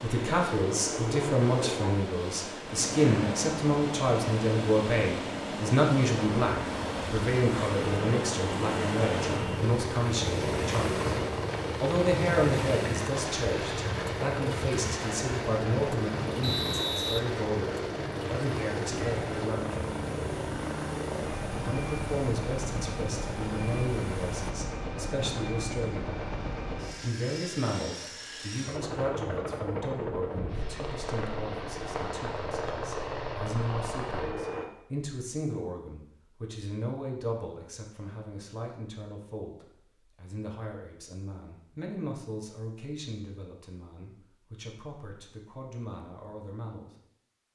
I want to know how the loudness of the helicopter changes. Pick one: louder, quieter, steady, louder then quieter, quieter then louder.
steady.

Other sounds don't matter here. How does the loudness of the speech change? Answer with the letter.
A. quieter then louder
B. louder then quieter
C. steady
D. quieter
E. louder
D.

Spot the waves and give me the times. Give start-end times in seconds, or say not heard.
0.0-24.6.